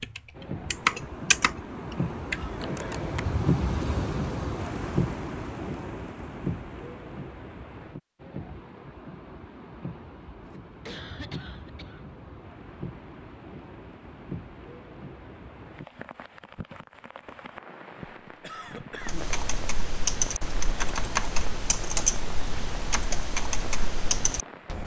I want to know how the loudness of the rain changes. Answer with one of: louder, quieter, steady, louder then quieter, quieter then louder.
quieter.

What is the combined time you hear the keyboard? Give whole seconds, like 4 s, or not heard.
9 s.